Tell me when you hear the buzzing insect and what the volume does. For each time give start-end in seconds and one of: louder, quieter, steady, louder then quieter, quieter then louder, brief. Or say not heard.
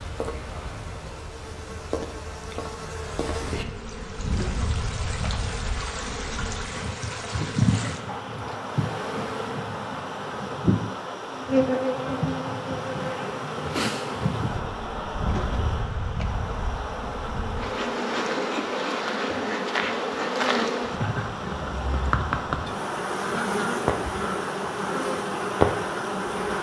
0.0-26.5 louder.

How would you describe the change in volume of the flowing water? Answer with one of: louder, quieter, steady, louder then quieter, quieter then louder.
steady.